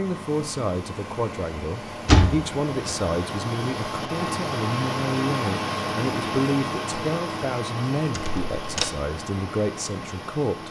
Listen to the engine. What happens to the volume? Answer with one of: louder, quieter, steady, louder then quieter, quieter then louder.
louder then quieter.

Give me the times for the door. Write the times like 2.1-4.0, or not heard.
2.0-3.0, 8.2-8.9.